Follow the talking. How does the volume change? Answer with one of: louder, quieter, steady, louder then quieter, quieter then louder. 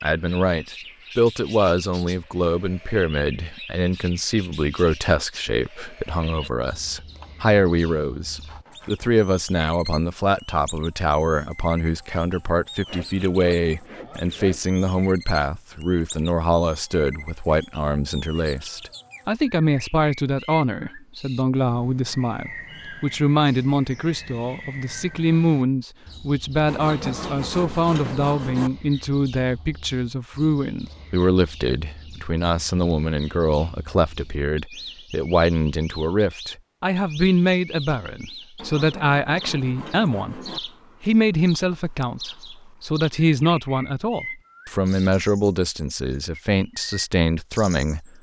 steady.